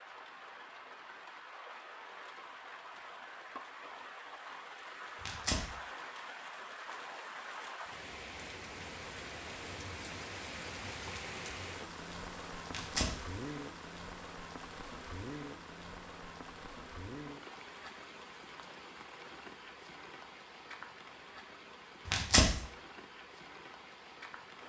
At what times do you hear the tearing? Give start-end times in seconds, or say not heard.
5.2-5.7, 12.7-13.2, 22.1-22.6.